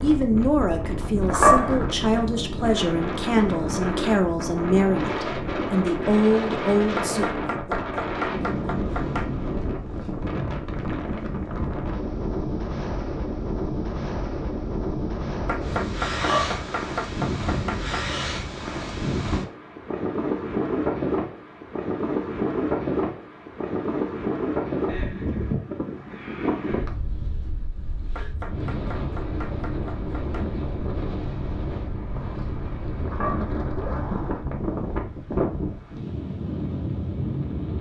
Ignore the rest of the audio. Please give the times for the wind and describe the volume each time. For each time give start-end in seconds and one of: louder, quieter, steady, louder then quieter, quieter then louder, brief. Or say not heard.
0.0-37.7 steady.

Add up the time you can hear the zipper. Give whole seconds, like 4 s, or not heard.
3 s.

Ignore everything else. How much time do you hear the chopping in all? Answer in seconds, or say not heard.
7 s.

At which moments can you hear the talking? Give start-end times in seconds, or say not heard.
0.0-7.2.